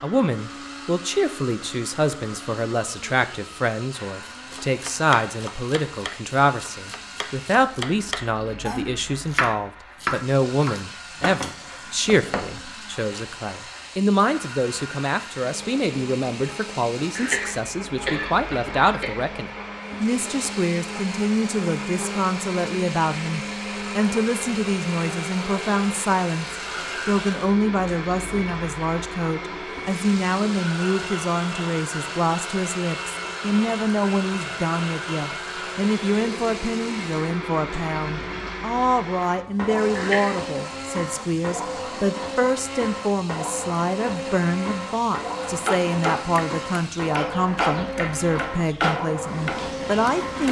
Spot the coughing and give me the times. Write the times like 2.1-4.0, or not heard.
17.1-19.1, 40.0-40.5.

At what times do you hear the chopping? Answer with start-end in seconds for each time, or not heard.
4.2-12.8, 45.5-50.4.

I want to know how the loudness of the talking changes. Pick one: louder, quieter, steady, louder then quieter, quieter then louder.
steady.